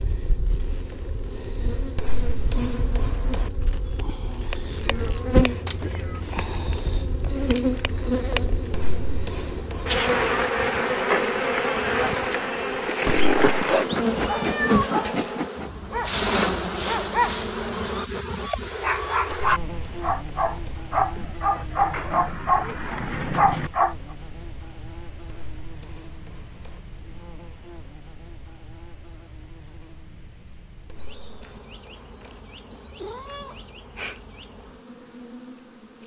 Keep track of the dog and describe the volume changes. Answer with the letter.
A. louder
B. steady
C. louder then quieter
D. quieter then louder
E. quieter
A.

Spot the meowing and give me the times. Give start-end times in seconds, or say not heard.
4.8-6.2, 13.0-15.3, 32.7-34.2.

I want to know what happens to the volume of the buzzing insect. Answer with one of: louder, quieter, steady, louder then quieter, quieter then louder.
louder then quieter.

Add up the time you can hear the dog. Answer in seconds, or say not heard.
10 s.